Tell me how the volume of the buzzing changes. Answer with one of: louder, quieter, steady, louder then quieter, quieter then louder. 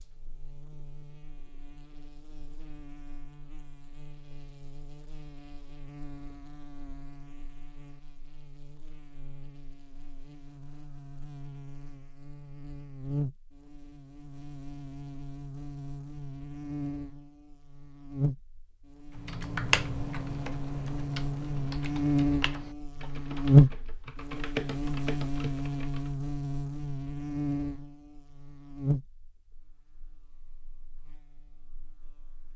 louder then quieter.